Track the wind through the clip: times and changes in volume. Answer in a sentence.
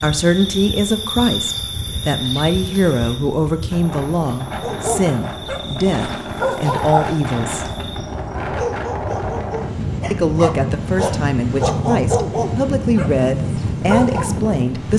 The wind can be heard from 0.0 to 14.9 s, getting louder.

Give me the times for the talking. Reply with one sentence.
The talking can be heard from 0.0 to 7.8 s and from 10.1 to 14.9 s.